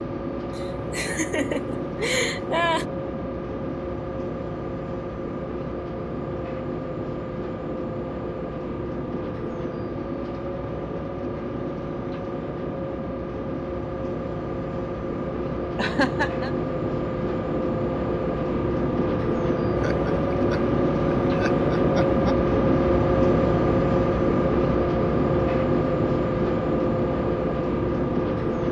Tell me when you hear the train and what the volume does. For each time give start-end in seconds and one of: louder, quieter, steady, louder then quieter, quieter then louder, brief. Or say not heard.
0.0-28.6 louder.